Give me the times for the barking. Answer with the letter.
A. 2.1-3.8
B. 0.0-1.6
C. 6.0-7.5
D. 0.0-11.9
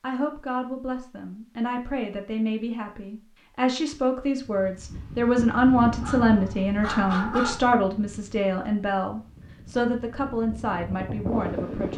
C.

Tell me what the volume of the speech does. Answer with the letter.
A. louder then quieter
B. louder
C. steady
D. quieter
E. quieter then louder
A.